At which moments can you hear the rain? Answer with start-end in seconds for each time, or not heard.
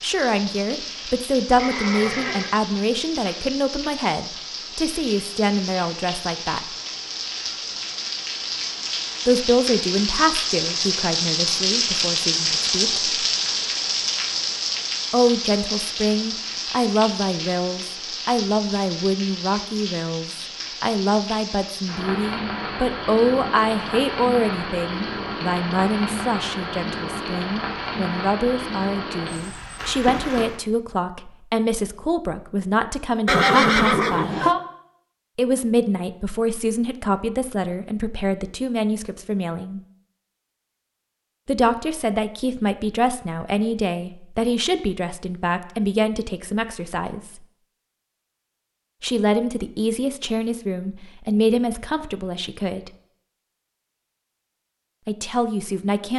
0.0-30.6.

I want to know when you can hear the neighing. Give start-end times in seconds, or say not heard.
1.6-2.5, 33.2-34.6.